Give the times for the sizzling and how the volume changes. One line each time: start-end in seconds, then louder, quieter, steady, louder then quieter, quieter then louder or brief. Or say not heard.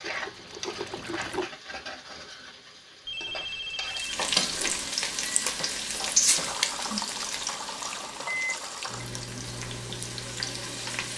0.0-11.1 louder then quieter.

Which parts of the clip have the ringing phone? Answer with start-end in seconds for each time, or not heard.
3.0-5.0.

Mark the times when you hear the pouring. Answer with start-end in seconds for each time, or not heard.
0.0-1.5, 6.4-9.1.